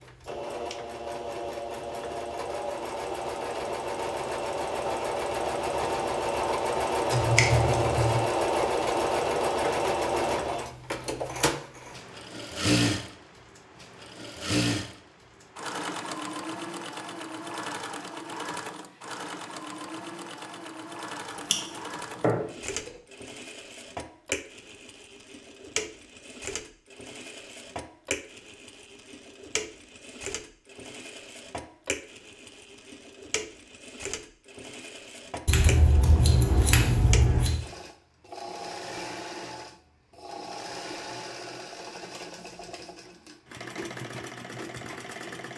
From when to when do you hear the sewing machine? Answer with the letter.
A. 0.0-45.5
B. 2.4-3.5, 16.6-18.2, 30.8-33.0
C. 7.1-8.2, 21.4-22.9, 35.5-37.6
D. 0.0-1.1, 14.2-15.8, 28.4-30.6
A.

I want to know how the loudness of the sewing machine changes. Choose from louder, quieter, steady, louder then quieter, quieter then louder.
quieter.